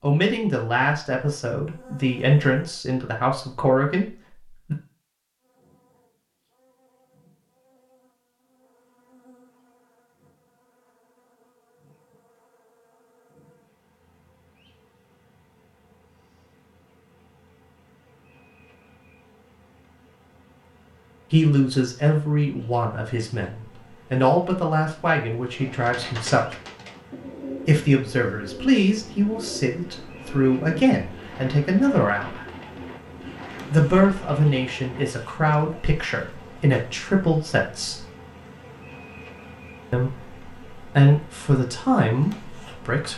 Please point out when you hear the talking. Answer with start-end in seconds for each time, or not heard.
0.0-4.8, 21.3-26.6, 27.6-32.5, 33.7-38.0, 39.9-43.1.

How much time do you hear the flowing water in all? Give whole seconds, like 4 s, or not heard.
not heard.